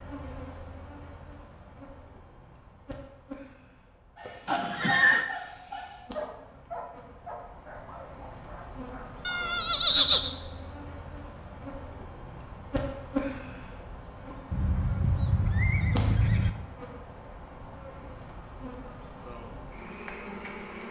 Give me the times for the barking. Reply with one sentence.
You can hear the barking from 4.2 to 9.5 s.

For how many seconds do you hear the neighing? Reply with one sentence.
The neighing can be heard for 4 seconds in total.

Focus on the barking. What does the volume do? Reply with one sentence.
The loudness of the barking goes down.